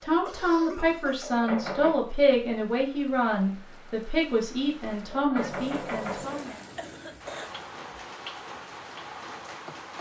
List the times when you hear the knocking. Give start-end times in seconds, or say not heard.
1.2-2.0, 5.1-6.5.